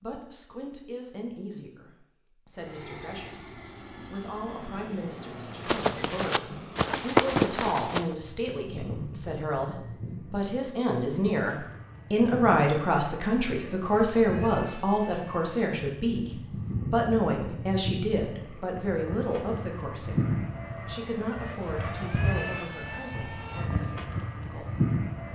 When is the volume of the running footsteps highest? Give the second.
7 s.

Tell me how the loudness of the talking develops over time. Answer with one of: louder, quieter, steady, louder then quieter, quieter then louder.
louder then quieter.